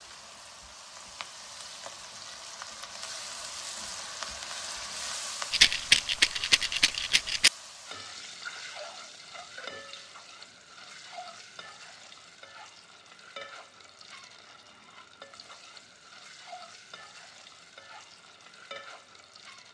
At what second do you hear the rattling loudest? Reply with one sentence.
The loudest moment of the rattling is at 6 seconds.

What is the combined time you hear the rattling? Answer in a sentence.
The rattling can be heard for 2 seconds in total.